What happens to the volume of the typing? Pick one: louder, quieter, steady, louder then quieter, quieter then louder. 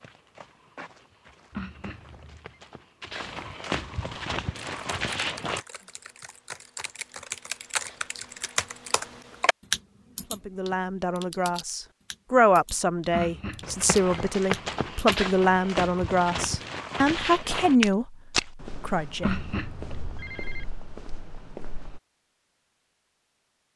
louder then quieter.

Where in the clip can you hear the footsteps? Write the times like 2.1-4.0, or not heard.
0.0-5.6, 13.6-22.0.